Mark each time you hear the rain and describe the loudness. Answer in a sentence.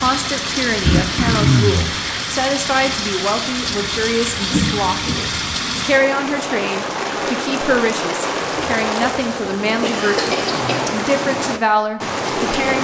The rain can be heard from 0.0 to 12.7 s, at a steady volume.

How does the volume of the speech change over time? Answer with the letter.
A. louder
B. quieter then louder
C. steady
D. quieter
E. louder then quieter
C.